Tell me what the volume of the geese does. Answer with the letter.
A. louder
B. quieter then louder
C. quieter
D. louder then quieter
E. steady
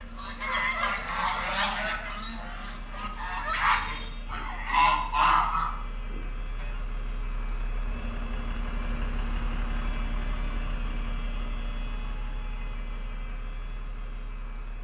B.